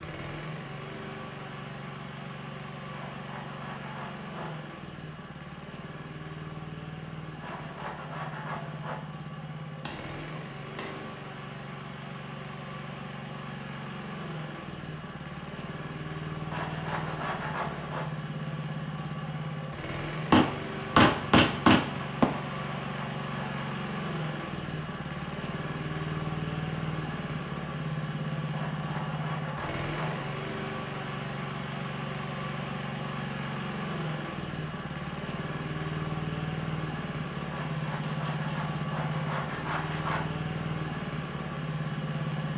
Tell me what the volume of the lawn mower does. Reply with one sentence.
The volume of the lawn mower goes up.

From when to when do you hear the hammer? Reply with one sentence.
You can hear the hammer from 9.8 to 11.2 s, from 20.3 to 22.2 s and from 37.4 to 38.8 s.